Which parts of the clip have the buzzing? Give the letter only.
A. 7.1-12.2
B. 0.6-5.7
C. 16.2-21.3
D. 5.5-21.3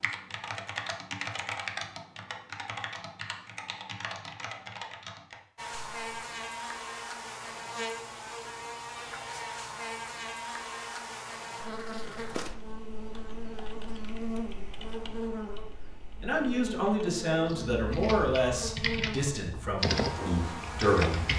D.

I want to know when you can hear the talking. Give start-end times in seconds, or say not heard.
16.2-21.3.